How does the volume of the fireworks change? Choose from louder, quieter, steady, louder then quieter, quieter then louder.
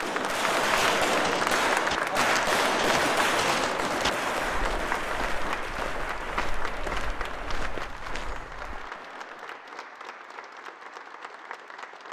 quieter.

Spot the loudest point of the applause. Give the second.
2 s.